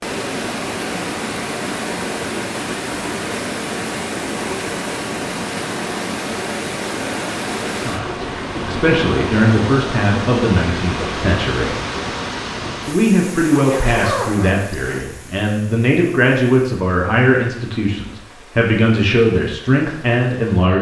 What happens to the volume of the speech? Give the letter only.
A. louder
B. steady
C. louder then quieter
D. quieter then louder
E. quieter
B.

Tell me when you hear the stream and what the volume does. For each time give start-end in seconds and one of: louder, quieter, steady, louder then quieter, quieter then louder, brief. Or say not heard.
0.0-20.7 quieter.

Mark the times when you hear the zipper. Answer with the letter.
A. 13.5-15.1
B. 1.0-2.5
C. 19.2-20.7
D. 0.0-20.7
A.